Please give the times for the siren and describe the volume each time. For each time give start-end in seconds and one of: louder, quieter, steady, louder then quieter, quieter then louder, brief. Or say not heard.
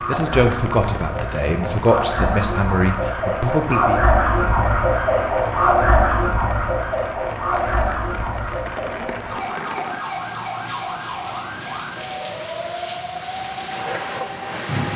0.0-14.9 louder then quieter.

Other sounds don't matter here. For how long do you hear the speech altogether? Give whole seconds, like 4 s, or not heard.
4 s.